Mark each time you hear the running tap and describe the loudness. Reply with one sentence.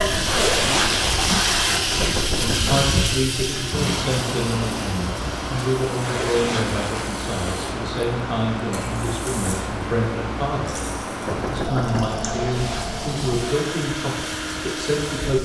You can hear the running tap from 0.0 to 15.4 s, getting quieter.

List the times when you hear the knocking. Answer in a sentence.
You can hear the knocking from 1.9 to 2.9 s and from 11.2 to 12.2 s.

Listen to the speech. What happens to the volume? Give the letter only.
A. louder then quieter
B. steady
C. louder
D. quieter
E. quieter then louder
B.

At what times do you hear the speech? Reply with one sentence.
The speech can be heard from 1.6 to 10.8 s and from 11.5 to 15.4 s.